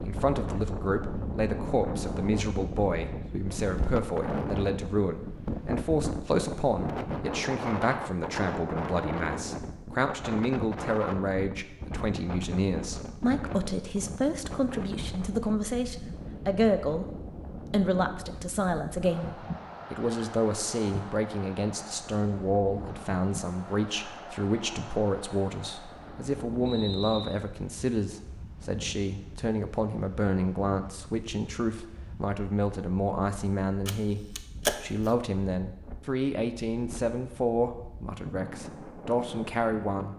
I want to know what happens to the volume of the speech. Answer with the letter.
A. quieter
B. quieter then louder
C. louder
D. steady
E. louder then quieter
D.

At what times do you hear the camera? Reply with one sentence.
The camera can be heard from 33.9 to 35.1 s.